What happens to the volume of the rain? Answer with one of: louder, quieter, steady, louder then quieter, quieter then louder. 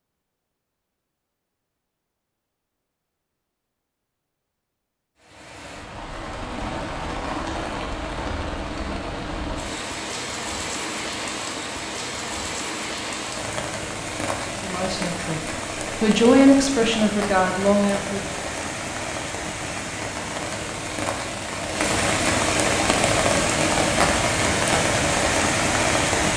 louder.